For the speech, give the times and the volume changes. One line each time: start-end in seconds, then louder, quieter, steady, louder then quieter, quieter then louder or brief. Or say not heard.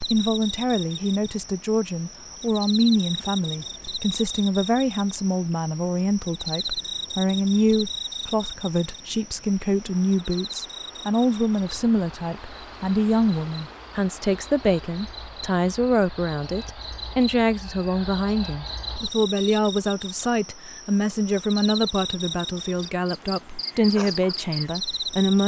0.0-25.4 steady.